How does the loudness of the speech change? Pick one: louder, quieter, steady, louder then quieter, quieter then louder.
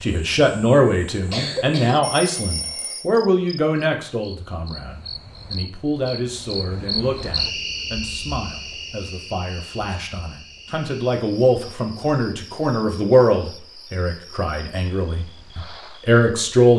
quieter then louder.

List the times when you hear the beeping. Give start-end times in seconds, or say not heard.
2.0-3.1.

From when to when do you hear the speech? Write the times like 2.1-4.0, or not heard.
0.0-16.7.